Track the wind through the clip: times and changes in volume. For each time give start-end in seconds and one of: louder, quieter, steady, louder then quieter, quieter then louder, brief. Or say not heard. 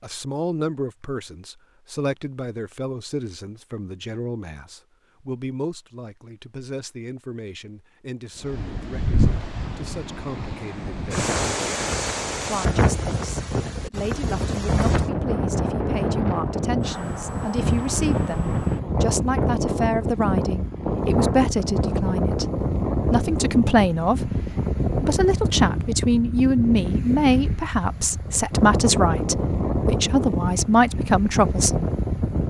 8.4-32.4 steady.